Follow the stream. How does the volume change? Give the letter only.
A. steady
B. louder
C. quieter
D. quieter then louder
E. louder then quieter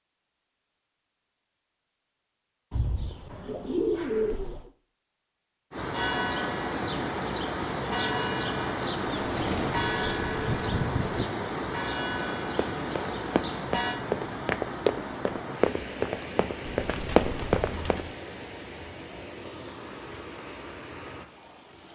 C.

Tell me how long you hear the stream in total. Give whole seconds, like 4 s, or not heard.
16 s.